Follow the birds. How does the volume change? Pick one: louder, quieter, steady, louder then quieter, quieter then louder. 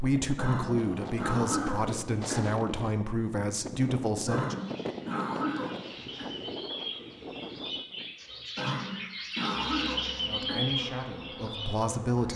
louder.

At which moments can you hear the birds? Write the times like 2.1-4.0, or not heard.
4.5-12.3.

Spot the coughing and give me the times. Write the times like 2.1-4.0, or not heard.
0.3-2.5, 4.2-6.3, 8.6-10.7.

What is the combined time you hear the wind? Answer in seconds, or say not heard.
8 s.